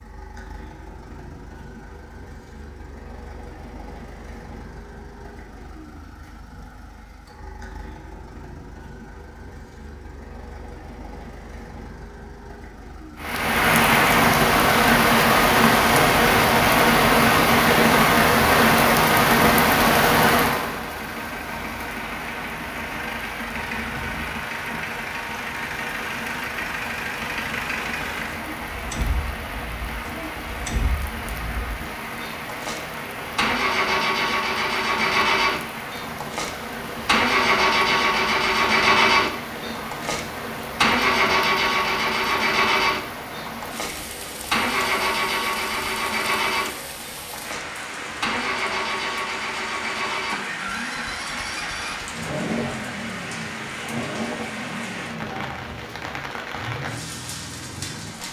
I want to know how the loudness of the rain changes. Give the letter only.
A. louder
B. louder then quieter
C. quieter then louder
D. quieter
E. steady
D.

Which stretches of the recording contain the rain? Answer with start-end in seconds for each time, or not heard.
13.2-58.2.